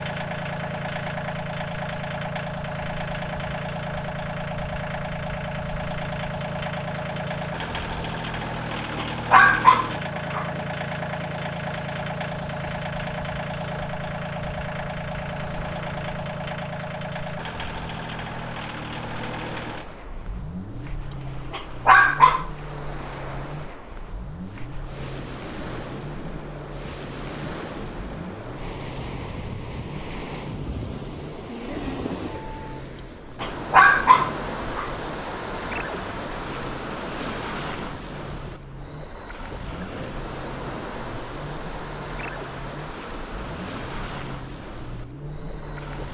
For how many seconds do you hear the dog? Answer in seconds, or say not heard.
4 s.